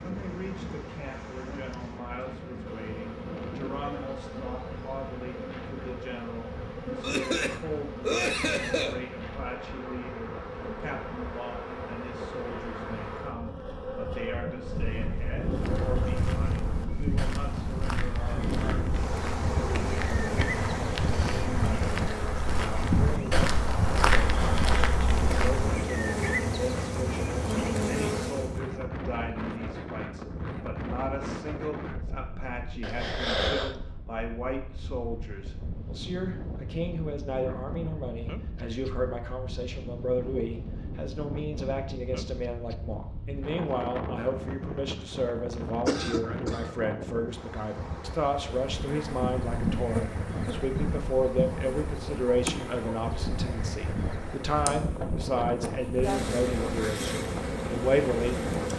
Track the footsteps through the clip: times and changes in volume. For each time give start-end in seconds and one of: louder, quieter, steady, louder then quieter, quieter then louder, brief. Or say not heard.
15.5-25.8 louder.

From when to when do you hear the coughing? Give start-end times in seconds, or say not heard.
7.0-9.0, 32.8-33.8, 45.9-46.8.